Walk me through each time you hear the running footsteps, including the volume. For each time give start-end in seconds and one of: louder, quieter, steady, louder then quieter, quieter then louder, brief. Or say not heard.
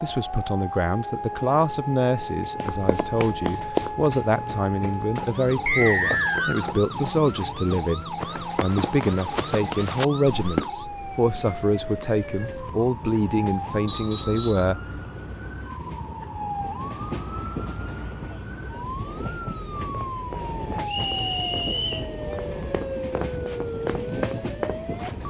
2.6-10.7 quieter then louder
19.8-25.2 louder.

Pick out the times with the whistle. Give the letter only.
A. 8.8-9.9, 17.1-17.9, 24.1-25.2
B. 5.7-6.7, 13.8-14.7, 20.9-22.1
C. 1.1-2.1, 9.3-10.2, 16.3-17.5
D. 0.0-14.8
B.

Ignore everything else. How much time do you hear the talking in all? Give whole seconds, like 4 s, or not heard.
15 s.